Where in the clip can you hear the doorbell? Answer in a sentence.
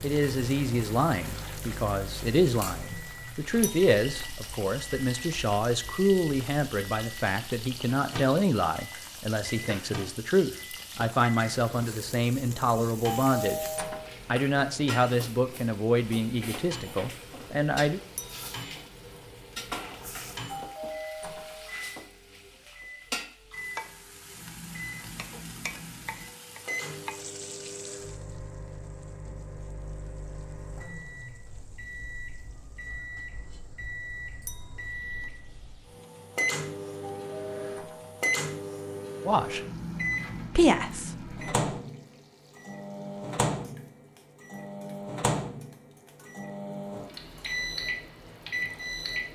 You can hear the doorbell from 13.1 to 14.2 s, from 20.4 to 21.7 s and from 37.1 to 38.2 s.